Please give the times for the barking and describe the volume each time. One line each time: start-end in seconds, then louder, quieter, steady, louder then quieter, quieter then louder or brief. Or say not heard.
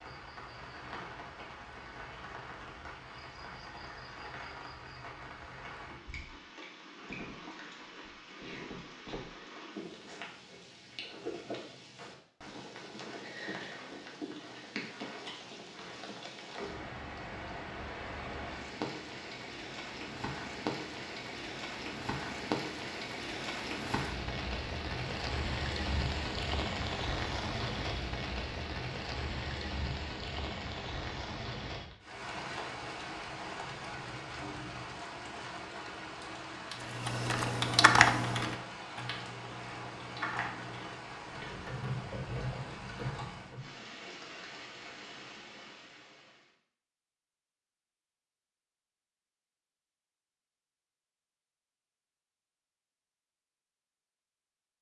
not heard.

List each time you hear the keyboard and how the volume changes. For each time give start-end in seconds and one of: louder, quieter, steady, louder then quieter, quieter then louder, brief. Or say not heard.
36.7-43.7 quieter.